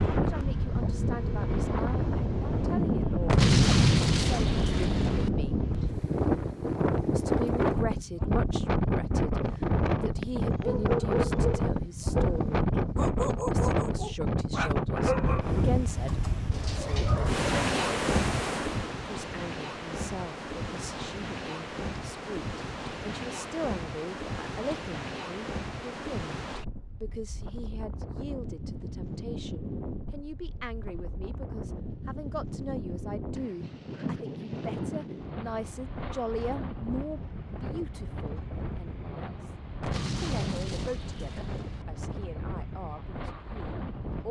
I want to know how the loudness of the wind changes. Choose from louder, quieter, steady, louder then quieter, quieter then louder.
quieter.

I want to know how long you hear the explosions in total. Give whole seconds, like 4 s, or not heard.
4 s.